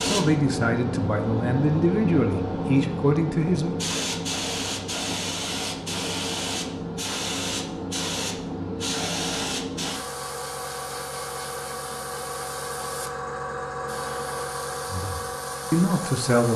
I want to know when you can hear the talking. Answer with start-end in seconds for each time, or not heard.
0.0-3.8, 14.9-16.5.